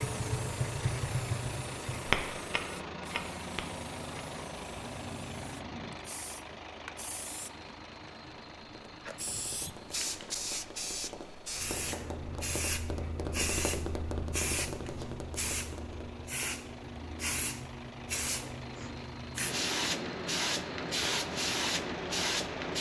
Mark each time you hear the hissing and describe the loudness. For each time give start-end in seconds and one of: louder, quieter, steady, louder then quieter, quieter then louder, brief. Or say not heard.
0.0-22.7 louder.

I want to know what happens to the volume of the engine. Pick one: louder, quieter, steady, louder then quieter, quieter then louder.
quieter then louder.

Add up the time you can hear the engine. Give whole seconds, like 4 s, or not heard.
23 s.